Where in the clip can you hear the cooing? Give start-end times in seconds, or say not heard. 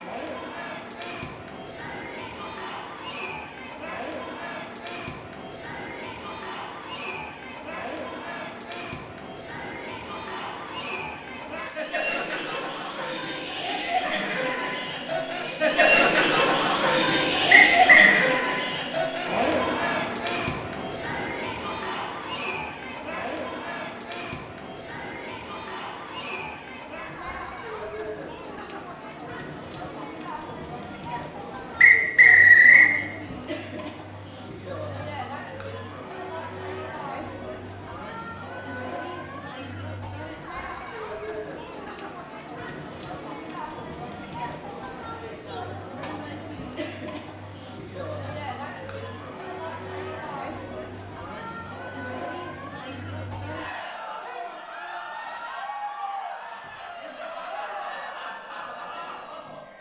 not heard.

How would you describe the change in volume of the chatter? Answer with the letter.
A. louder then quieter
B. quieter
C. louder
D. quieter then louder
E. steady
A.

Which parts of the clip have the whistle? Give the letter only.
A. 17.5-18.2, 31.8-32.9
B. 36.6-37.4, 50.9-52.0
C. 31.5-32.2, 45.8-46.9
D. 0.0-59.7
A.